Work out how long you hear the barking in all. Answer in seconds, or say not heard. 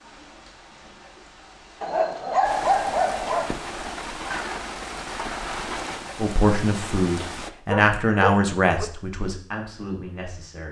3 s.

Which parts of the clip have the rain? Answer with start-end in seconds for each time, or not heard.
0.0-7.5.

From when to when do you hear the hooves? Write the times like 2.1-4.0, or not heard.
not heard.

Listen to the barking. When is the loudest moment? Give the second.
3 s.